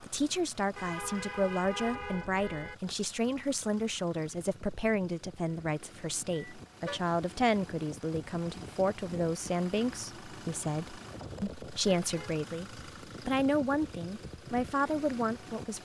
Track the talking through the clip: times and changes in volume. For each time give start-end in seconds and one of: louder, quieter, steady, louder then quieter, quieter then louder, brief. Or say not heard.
0.0-15.8 steady.